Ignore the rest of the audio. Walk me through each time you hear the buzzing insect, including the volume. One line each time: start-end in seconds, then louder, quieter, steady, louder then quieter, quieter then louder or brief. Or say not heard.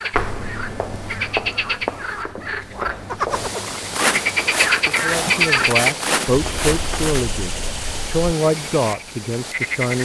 not heard.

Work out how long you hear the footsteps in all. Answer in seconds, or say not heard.
7 s.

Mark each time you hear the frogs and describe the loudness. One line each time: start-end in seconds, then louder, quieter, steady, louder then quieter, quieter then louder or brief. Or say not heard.
0.0-9.9 louder then quieter.